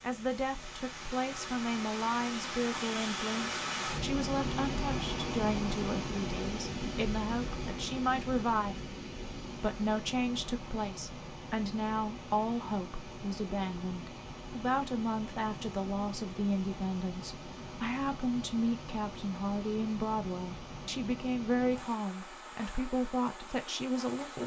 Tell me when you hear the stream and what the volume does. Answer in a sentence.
You can hear the stream from 0.0 to 24.4 s, getting quieter.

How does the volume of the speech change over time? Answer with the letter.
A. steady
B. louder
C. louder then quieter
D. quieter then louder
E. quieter
A.